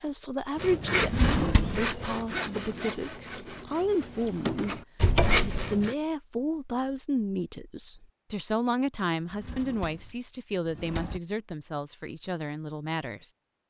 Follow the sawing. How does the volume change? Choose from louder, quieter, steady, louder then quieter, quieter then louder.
quieter then louder.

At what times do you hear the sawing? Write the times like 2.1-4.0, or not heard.
0.6-6.0.